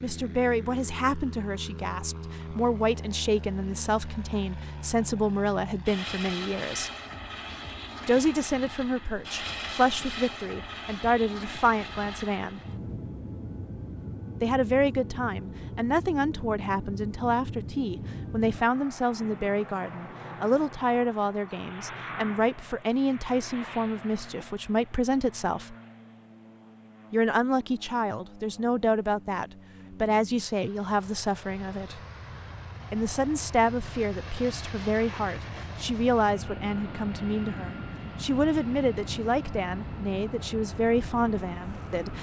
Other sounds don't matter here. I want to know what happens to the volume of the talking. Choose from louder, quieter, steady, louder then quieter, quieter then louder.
steady.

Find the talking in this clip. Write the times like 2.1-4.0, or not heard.
0.0-6.9, 8.1-12.6, 14.4-25.8, 27.1-32.0, 32.9-42.1.